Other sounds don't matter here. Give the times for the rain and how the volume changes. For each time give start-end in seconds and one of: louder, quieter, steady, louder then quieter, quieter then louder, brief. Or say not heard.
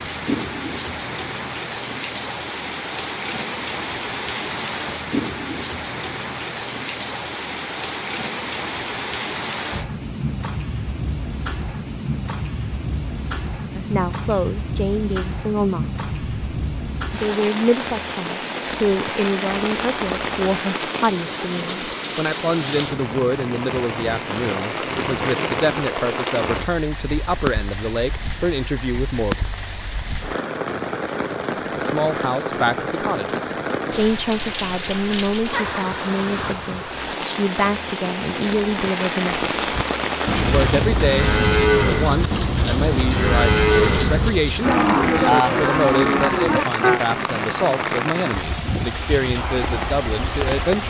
0.0-50.8 steady.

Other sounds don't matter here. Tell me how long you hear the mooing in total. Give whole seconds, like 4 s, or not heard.
7 s.